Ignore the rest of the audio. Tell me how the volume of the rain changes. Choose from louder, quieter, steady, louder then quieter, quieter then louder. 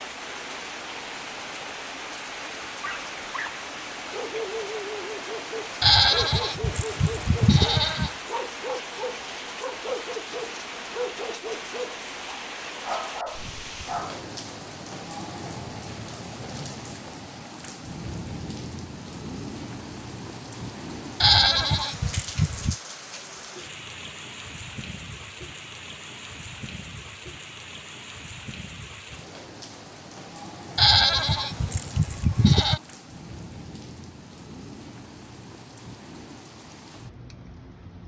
quieter.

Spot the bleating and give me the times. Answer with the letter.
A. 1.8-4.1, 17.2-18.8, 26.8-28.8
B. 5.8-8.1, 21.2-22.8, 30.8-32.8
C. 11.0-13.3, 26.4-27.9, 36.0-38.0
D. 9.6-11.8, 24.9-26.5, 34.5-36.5
B.